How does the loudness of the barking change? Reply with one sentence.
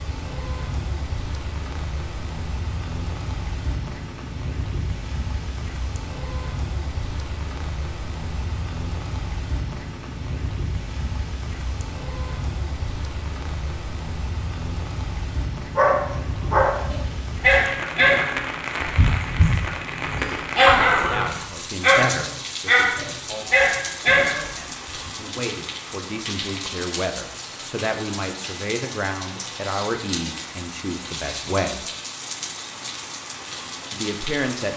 The loudness of the barking stays about the same.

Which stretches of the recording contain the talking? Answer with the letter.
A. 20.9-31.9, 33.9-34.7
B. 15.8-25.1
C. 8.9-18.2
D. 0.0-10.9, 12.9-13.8
A.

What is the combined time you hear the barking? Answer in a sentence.
The barking can be heard for 9 seconds in total.